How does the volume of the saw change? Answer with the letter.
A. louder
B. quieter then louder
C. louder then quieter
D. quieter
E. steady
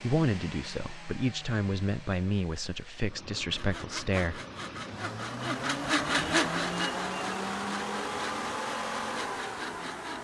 C.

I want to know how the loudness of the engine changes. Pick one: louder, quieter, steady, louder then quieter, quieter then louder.
louder.